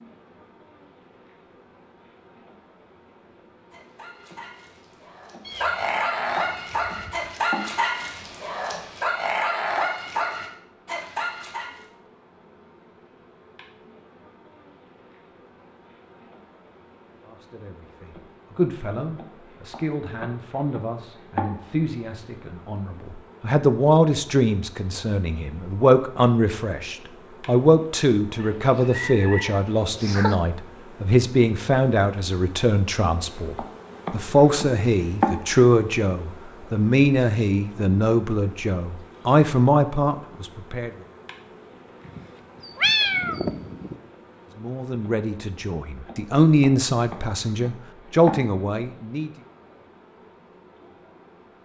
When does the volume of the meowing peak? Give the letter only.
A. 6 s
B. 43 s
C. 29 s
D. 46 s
B.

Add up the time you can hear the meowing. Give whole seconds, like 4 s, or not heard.
6 s.